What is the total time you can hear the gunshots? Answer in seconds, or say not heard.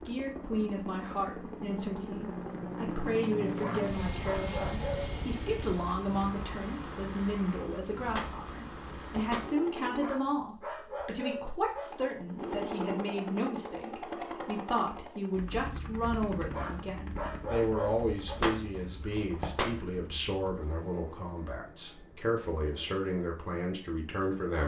3 s.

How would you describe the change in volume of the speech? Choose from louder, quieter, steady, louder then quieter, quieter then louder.
steady.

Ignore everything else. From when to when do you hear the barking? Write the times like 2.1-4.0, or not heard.
3.6-5.2, 9.9-11.9, 16.5-18.4.